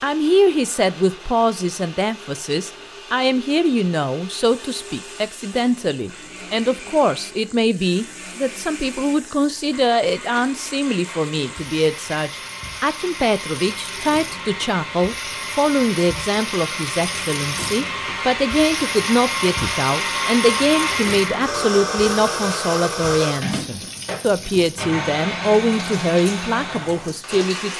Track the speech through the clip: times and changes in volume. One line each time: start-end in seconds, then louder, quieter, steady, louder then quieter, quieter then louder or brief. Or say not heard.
0.0-27.7 steady.